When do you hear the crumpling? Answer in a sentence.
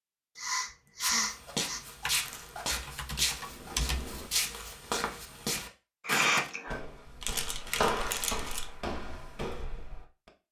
The crumpling can be heard from 2.0 to 2.8 s and from 7.2 to 8.7 s.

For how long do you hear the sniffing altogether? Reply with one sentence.
You can hear the sniffing for 2 seconds altogether.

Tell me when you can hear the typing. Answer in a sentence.
The typing can be heard from 2.0 to 4.2 s.